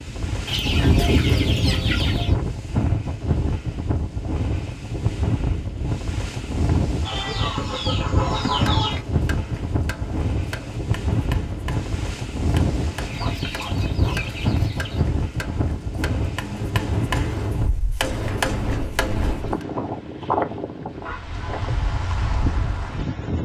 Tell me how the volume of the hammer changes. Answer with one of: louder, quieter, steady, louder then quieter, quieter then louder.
louder.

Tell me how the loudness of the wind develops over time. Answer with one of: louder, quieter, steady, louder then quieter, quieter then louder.
steady.